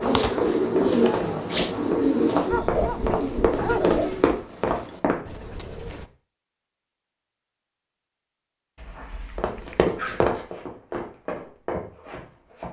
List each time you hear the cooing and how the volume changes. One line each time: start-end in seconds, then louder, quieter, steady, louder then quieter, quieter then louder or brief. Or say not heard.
0.0-6.1 quieter.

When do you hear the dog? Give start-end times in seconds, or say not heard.
2.5-4.2, 8.8-10.4.